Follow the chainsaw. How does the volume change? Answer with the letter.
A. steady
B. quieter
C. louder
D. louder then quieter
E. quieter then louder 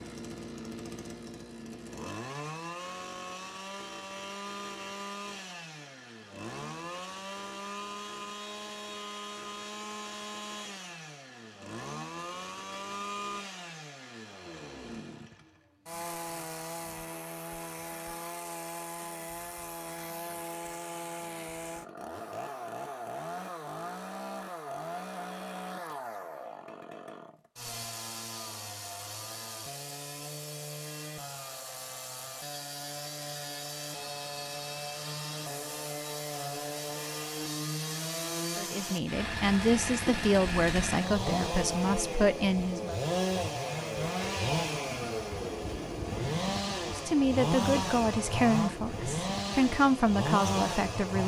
C.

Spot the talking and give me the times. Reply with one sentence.
The talking can be heard from 38.5 to 43.0 s and from 46.9 to 51.2 s.